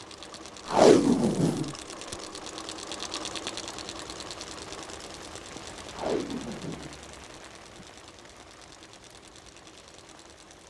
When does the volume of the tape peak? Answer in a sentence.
The loudest moment of the tape is at 1 second.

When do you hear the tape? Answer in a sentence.
The tape can be heard from 0.7 to 2.1 s and from 5.9 to 7.8 s.